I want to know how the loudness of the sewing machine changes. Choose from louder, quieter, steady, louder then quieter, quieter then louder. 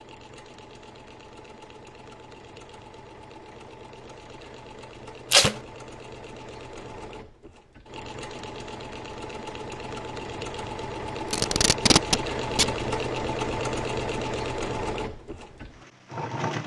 louder.